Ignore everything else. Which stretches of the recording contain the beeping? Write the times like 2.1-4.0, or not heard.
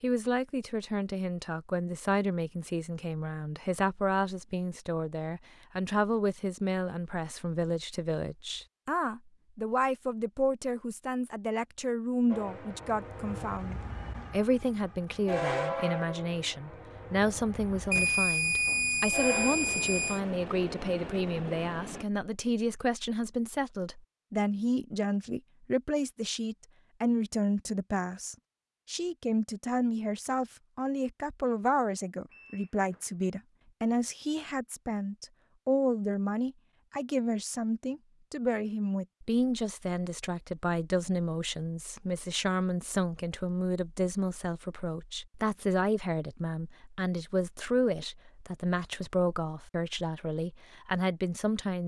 17.9-20.2, 32.3-33.0.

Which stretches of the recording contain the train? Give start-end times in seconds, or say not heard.
12.3-22.1.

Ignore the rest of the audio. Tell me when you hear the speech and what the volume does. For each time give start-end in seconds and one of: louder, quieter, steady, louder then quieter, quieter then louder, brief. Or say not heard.
0.0-51.8 steady.